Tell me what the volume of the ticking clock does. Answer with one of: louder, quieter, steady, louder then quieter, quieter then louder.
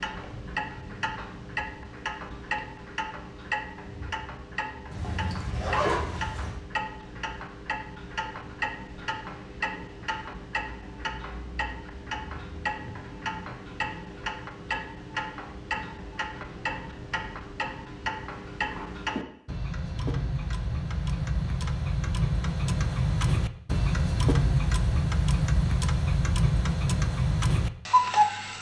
louder.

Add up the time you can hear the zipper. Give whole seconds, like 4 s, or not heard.
2 s.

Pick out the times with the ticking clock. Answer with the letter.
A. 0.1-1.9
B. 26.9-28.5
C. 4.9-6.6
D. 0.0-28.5
D.